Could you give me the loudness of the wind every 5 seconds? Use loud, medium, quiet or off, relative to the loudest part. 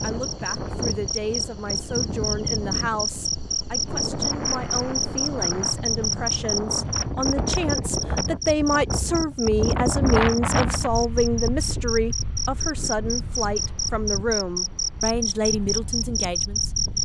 loud, loud, loud, medium.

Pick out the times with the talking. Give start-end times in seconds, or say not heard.
0.0-16.8.